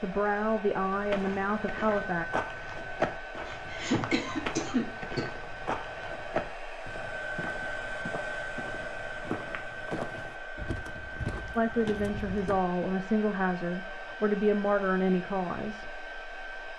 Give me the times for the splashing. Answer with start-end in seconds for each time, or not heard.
not heard.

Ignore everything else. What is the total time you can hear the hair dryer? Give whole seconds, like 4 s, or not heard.
17 s.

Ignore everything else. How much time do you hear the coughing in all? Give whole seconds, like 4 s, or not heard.
2 s.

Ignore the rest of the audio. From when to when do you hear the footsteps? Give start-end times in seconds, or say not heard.
0.9-12.6.